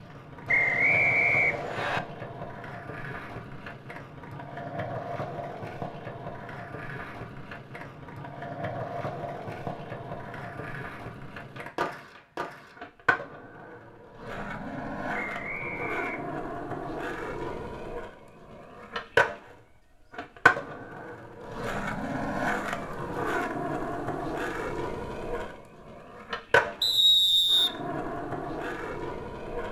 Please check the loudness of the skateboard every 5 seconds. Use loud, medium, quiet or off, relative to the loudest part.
medium, medium, medium, loud, loud, loud.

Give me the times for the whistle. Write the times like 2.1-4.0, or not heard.
0.5-2.0, 15.2-16.4, 26.8-27.8.